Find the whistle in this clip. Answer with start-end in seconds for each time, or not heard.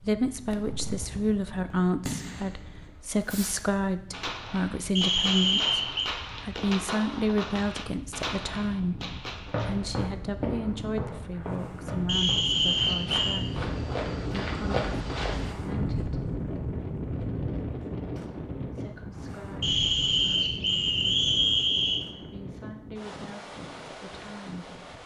5.0-6.1, 12.1-13.4, 19.6-22.0.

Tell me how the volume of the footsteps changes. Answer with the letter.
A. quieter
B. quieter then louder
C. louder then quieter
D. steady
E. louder
B.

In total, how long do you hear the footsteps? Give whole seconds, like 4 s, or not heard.
6 s.